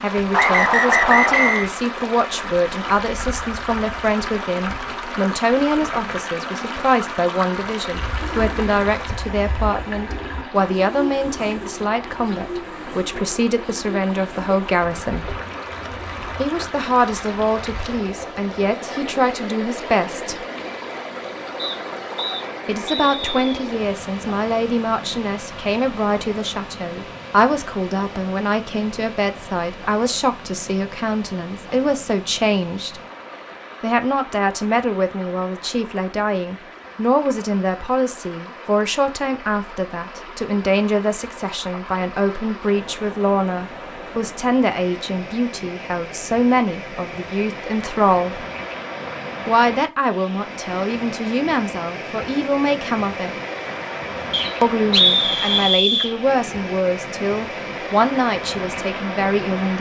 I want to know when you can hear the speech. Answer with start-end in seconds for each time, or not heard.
0.0-15.3, 16.4-20.4, 22.6-33.0, 33.8-48.5, 49.5-53.4, 54.6-59.7.